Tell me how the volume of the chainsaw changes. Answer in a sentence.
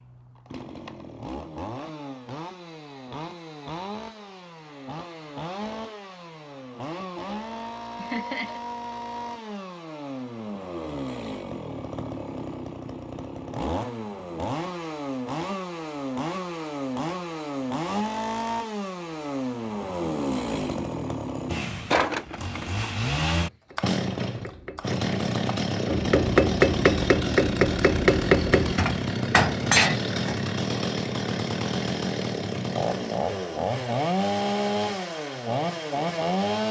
The loudness of the chainsaw goes up.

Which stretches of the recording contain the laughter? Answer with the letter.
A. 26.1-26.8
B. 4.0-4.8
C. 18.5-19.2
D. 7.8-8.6
D.